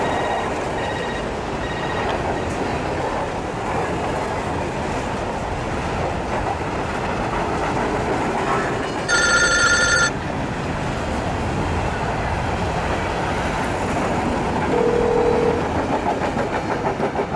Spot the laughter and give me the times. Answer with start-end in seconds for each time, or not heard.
not heard.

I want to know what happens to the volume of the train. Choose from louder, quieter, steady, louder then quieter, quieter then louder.
steady.